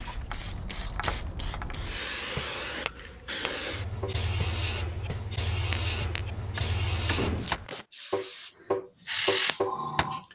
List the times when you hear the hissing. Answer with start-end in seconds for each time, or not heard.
0.0-10.3.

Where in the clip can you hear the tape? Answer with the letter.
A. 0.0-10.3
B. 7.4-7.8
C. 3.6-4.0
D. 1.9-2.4
B.